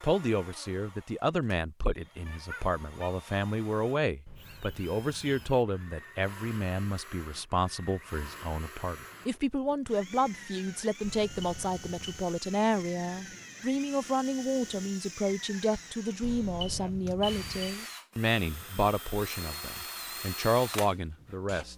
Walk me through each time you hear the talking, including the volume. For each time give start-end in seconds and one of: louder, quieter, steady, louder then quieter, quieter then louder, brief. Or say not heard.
0.0-21.7 steady.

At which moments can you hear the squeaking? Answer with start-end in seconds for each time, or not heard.
2.2-3.1.